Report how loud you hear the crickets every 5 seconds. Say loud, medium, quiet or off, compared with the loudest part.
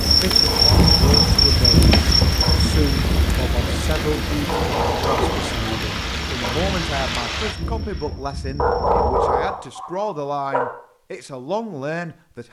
loud, quiet, off.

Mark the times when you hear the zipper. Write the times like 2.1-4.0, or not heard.
not heard.